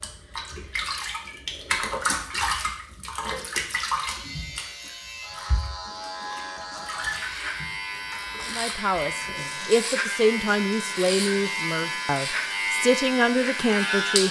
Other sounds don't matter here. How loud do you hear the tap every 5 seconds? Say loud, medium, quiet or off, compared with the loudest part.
loud, medium, quiet.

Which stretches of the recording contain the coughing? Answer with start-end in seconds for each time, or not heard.
not heard.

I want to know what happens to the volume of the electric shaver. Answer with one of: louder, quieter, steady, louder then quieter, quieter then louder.
louder.